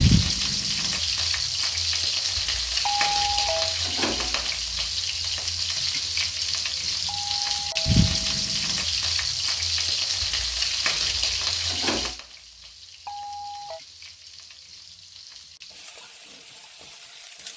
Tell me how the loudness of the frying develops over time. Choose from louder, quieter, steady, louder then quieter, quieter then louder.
quieter.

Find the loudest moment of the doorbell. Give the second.
3 s.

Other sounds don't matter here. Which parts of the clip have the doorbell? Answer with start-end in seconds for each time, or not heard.
2.9-3.8, 7.0-8.4, 13.1-13.8.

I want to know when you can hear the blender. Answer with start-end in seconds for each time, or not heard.
not heard.